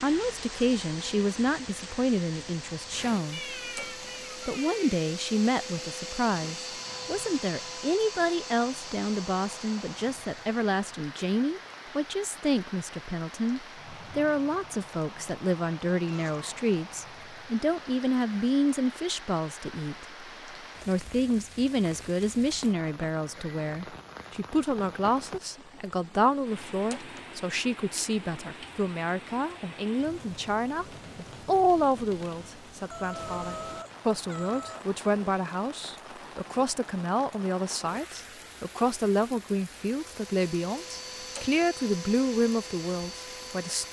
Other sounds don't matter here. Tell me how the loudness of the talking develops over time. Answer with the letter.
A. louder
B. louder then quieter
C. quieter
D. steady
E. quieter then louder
D.